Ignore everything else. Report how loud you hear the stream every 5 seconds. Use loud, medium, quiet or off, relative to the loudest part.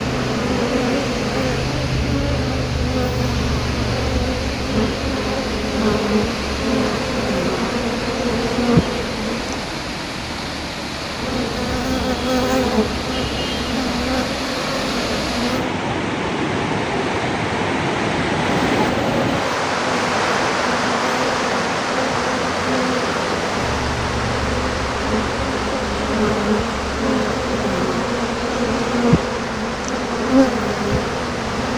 medium, medium, medium, loud, loud, medium, medium.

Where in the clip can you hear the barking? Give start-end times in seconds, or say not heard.
not heard.